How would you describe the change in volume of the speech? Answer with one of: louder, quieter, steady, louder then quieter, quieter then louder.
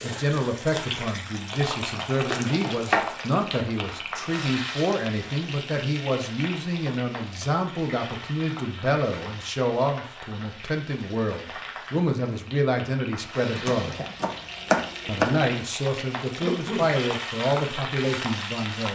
steady.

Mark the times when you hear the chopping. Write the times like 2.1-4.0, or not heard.
2.2-4.0, 13.6-15.4.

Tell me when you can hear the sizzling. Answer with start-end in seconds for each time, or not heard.
0.0-18.8.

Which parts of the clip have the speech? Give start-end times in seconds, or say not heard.
0.0-14.0, 15.1-18.8.